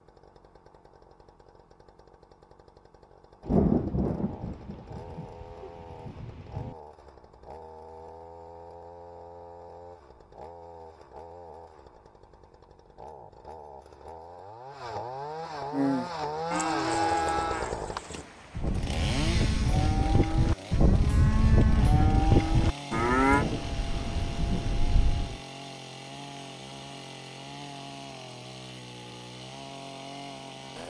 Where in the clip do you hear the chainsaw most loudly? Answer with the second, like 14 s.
17 s.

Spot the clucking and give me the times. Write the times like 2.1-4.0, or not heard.
not heard.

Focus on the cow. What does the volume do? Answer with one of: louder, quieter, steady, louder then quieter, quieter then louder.
quieter then louder.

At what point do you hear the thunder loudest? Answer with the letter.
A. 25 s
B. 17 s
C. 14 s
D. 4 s
D.